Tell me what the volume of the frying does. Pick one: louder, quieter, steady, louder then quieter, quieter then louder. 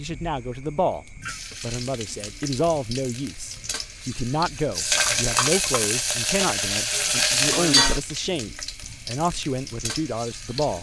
louder then quieter.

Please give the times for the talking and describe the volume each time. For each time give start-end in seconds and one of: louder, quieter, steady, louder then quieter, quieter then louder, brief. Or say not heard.
0.0-10.7 steady.